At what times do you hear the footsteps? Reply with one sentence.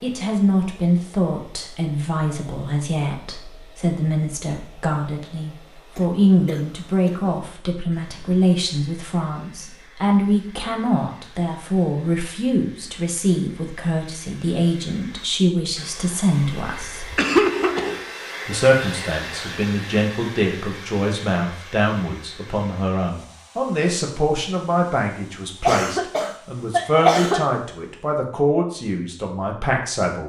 You can't hear the footsteps here.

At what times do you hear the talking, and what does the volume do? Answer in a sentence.
The talking can be heard from 0.0 to 17.1 s, at a steady volume; and from 18.4 to 30.2 s, at a steady volume.